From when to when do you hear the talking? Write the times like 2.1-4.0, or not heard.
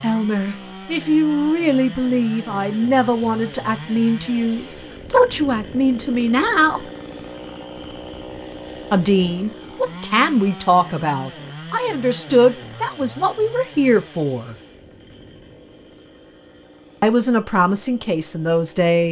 0.0-6.8, 8.9-14.6, 17.0-19.0.